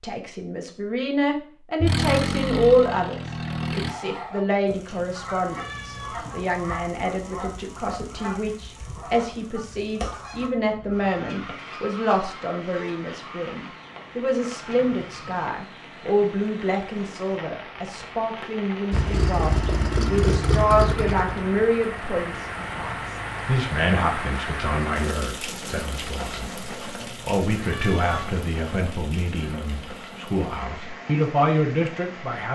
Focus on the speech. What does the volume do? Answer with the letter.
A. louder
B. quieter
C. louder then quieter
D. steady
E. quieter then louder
D.